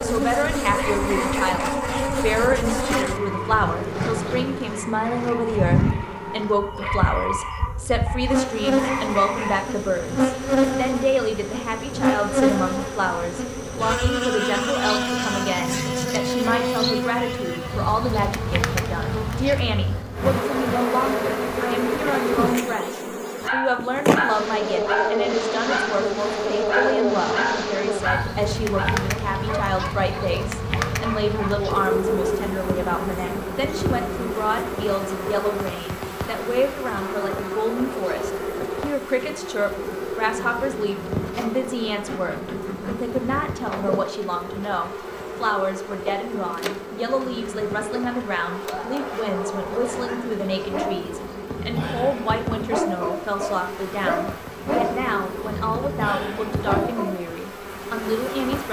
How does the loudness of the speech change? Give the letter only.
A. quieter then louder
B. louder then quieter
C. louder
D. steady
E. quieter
D.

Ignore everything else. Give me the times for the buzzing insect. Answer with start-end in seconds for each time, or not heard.
0.0-58.6.